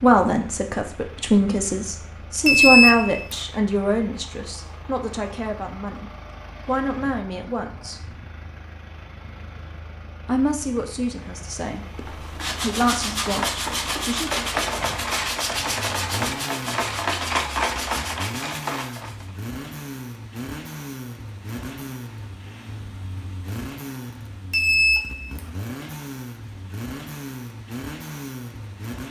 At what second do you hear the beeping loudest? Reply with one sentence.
The volume of the beeping peaks at 3 seconds.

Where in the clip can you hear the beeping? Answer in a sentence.
The beeping can be heard from 2.5 to 3.4 s and from 24.5 to 25.5 s.